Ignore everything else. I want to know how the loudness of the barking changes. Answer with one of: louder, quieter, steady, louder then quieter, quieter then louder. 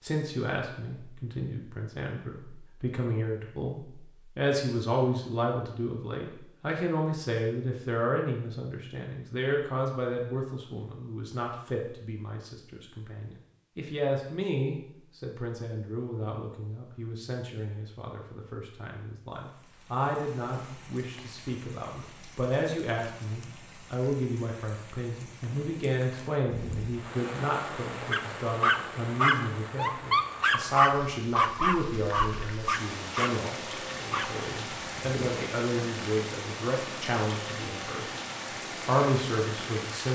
quieter.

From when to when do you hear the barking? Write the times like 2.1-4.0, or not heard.
28.1-35.2.